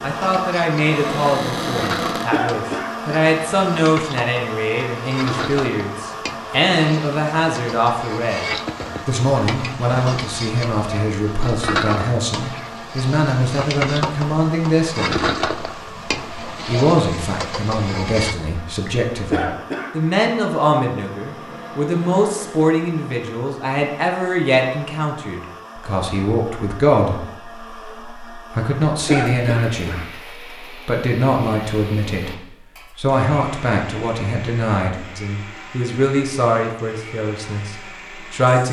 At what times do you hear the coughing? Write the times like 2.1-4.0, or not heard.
2.3-3.1, 19.3-19.9, 29.1-30.1.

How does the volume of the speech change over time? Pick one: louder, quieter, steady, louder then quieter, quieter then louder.
steady.